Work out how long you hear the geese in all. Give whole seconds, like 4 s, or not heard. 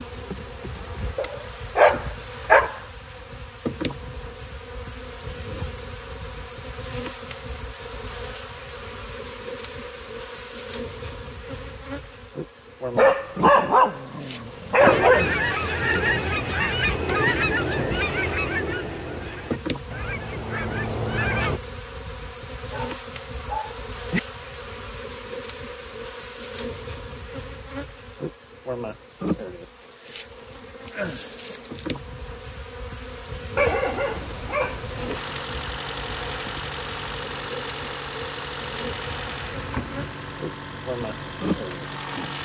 7 s.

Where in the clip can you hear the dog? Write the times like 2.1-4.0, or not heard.
1.1-2.8, 12.9-15.3, 22.7-24.2, 33.5-35.2.